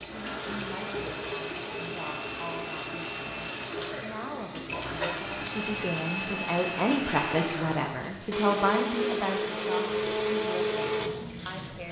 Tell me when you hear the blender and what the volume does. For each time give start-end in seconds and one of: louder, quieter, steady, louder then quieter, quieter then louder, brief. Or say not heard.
0.0-11.8 louder.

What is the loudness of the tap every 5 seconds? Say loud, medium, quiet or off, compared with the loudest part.
loud, loud, medium.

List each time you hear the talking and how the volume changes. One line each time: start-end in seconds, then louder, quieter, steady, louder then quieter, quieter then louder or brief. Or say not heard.
0.1-11.8 louder then quieter.